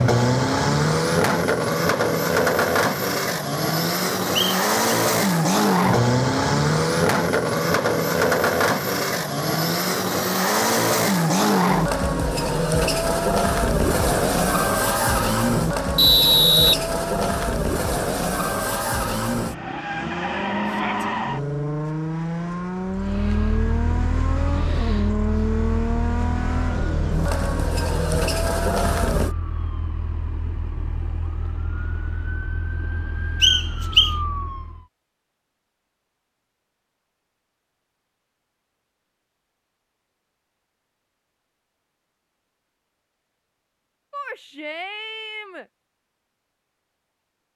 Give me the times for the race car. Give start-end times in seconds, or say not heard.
0.0-29.4.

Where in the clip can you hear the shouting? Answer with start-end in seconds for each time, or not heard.
20.6-21.1, 44.1-45.6.